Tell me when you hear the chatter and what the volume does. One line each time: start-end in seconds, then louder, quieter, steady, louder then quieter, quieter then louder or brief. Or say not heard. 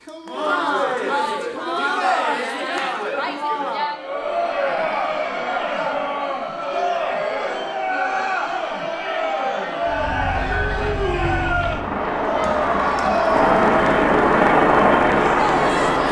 0.0-16.0 steady.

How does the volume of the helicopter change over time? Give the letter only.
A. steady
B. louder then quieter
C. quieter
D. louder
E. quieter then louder
D.